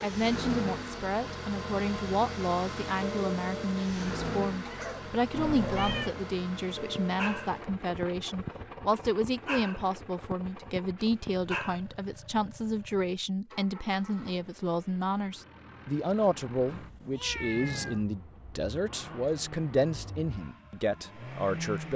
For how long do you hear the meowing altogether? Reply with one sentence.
You can hear the meowing for 2 seconds altogether.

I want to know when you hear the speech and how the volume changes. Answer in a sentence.
You can hear the speech from 0.0 to 21.9 s, at a steady volume.